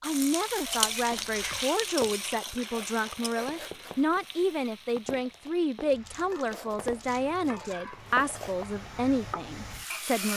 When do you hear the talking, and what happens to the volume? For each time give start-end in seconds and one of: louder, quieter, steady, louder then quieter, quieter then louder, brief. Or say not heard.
0.0-10.3 steady.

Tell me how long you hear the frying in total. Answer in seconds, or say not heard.
10 s.